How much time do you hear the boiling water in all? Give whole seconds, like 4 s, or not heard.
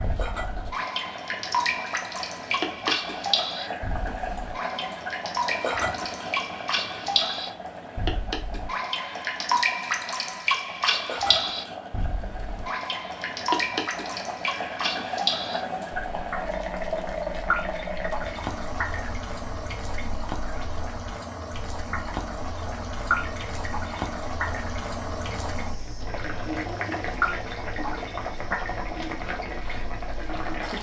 31 s.